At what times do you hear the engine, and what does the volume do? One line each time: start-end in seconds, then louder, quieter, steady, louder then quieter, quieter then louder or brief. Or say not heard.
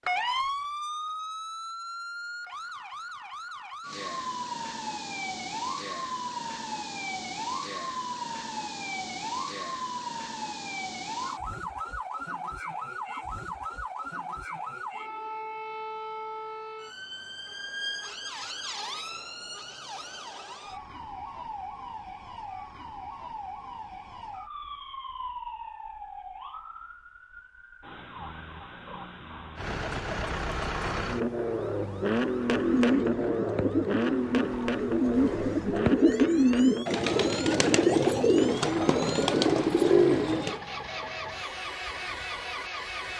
29.6-43.1 quieter.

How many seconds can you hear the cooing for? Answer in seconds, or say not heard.
8 s.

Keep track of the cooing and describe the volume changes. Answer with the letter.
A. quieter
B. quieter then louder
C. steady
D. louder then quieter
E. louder
E.